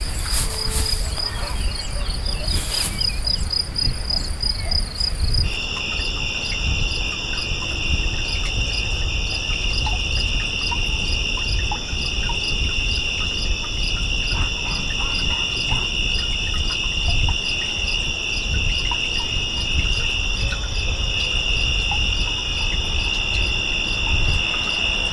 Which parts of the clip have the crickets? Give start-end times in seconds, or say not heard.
0.0-25.0.